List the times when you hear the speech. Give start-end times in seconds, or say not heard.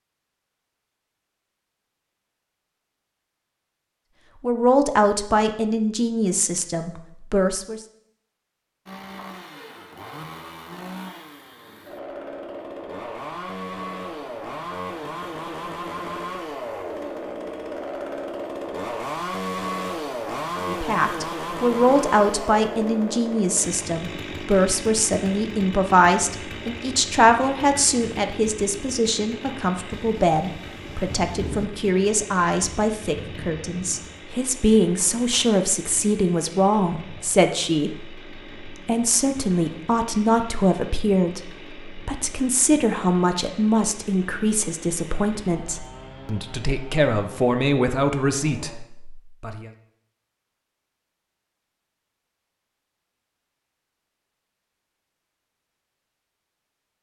4.4-7.8, 20.6-49.7.